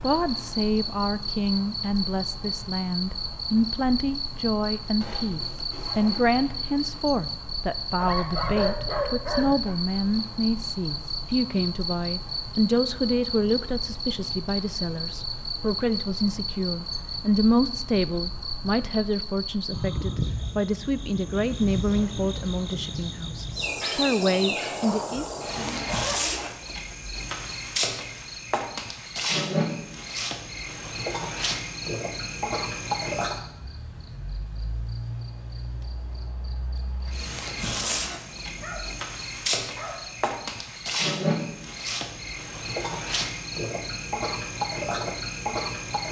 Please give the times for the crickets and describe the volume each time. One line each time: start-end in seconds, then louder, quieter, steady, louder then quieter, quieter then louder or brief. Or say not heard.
0.0-46.0 steady.